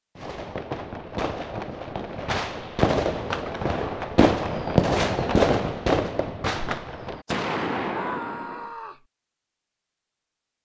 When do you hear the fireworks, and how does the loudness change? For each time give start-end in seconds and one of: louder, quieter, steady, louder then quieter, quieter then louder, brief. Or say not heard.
0.1-8.7 louder then quieter.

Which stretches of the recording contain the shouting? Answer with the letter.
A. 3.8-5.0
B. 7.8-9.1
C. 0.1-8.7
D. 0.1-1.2
B.